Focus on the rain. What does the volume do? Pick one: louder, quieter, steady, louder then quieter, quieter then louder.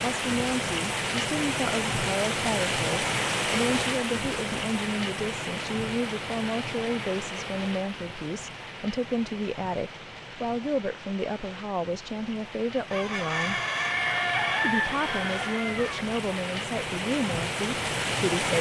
quieter then louder.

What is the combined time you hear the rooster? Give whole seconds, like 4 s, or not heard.
3 s.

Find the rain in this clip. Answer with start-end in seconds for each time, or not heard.
0.0-18.5.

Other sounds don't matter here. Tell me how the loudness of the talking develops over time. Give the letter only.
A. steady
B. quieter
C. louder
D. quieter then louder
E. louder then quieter
A.